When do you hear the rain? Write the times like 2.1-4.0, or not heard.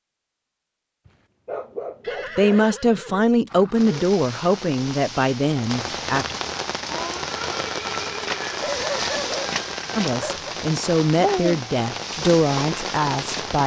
3.8-13.6.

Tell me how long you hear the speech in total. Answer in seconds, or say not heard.
8 s.